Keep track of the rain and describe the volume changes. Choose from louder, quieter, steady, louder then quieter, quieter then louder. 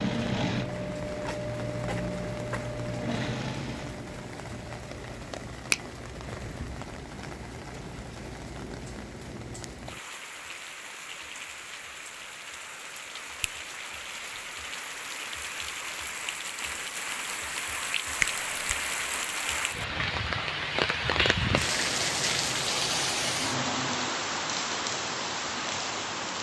louder.